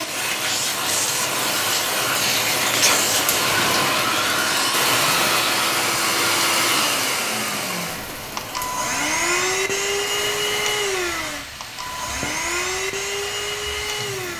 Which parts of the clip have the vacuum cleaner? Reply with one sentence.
The vacuum cleaner can be heard from 0.0 to 14.3 s.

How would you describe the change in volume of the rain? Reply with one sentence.
The volume of the rain goes down.